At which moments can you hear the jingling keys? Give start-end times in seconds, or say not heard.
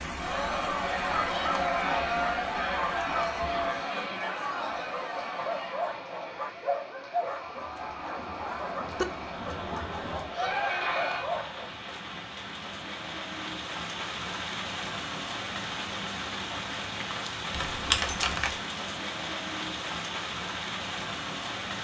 17.5-18.6.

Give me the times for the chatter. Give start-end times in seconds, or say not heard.
0.0-11.2.